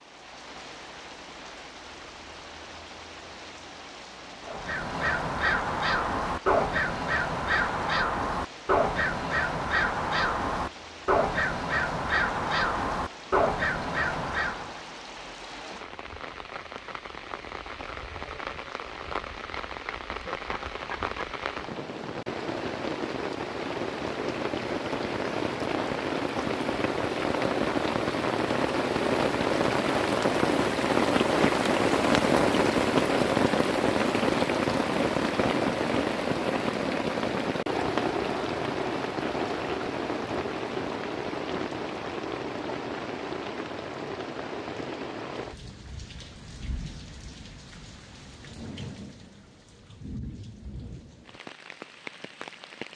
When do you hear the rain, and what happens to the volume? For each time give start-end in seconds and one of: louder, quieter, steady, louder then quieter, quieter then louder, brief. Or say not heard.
0.0-52.9 louder then quieter.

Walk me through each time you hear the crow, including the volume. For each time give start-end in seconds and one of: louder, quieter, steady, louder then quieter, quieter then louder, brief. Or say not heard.
4.5-14.8 steady.